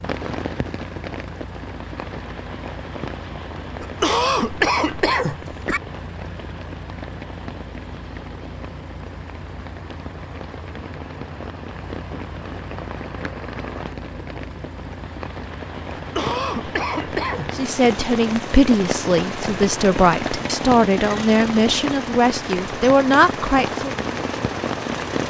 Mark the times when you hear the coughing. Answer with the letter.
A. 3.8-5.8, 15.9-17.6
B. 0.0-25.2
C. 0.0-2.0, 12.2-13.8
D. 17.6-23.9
A.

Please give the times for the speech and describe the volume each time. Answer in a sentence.
The speech can be heard from 17.6 to 23.9 s, at a steady volume.